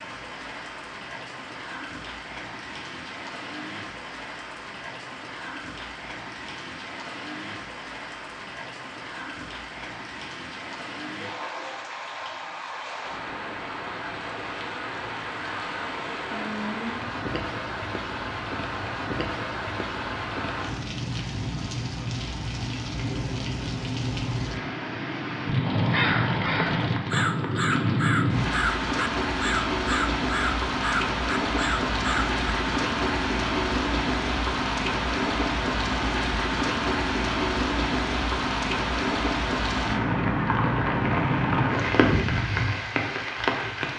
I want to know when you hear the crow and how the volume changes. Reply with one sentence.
The crow can be heard from 25.6 to 32.4 s, at a steady volume.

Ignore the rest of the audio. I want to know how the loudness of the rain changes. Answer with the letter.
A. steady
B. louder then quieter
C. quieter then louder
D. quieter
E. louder
E.